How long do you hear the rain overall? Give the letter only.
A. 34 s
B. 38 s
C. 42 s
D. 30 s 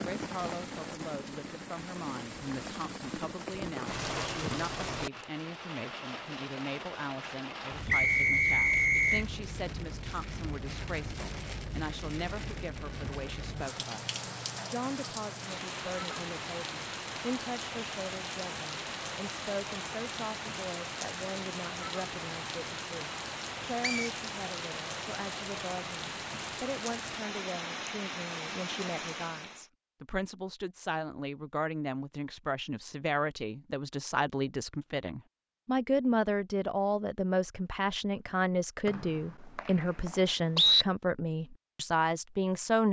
D.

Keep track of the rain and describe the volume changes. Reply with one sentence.
The loudness of the rain stays about the same.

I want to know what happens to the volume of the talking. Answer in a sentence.
The volume of the talking goes up.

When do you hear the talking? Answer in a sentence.
The talking can be heard from 0.0 to 42.8 s.